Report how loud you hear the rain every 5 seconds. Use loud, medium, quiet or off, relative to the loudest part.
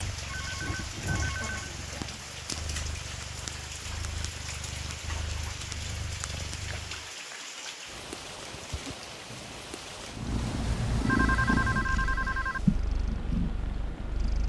loud, loud, medium.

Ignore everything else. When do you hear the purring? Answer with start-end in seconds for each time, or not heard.
0.0-7.1, 9.9-14.4.